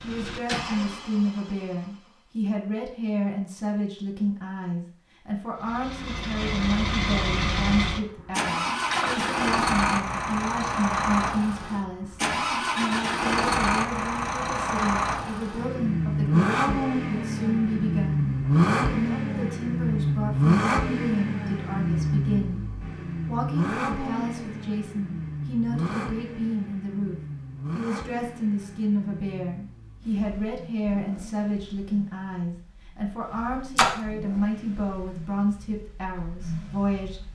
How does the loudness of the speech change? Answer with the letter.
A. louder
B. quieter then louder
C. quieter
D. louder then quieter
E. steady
E.